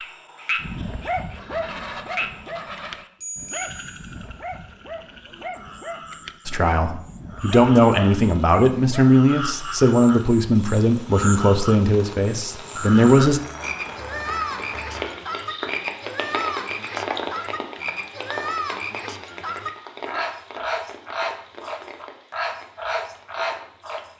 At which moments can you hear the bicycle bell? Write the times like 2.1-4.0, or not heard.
3.2-4.3, 13.4-13.8.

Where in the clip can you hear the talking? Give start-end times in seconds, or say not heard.
6.5-13.4.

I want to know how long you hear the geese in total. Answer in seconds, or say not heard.
2 s.